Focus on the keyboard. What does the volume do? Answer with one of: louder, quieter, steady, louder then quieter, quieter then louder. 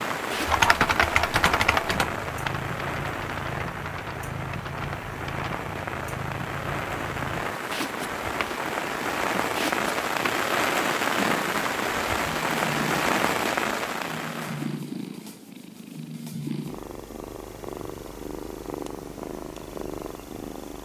quieter.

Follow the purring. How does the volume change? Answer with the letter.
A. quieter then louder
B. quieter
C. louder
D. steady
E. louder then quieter
D.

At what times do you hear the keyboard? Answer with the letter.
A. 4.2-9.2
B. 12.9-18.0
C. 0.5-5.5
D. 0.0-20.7
C.